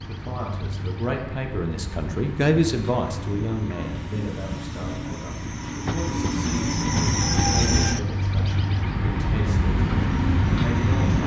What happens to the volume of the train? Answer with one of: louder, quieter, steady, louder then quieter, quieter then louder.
louder.